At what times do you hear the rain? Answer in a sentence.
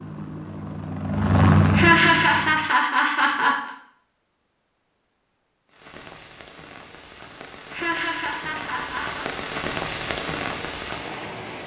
You can hear the rain from 5.7 to 11.6 s.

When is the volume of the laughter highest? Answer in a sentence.
The volume of the laughter peaks at 2 seconds.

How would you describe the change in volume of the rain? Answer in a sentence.
The volume of the rain goes up.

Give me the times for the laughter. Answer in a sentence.
The laughter can be heard from 1.2 to 3.8 s and from 7.2 to 9.2 s.